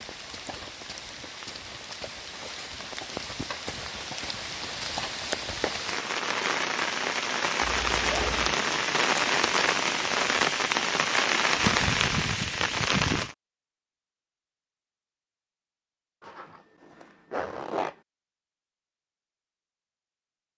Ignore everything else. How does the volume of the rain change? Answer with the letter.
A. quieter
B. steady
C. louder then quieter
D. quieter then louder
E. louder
E.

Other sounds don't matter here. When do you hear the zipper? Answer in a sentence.
You can hear the zipper from 7.8 to 8.6 s and from 16.2 to 17.9 s.